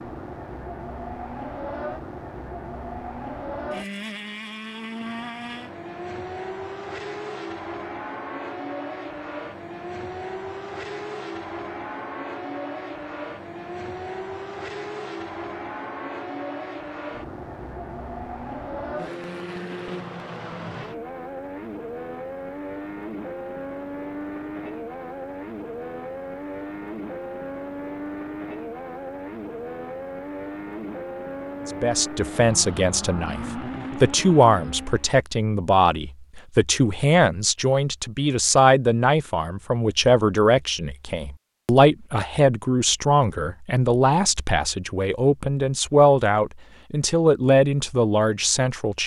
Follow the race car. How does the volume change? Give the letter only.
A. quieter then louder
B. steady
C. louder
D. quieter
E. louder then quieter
B.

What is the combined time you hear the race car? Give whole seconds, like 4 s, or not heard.
35 s.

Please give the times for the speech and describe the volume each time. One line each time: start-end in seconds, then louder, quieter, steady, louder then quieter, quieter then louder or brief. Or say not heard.
31.6-49.0 steady.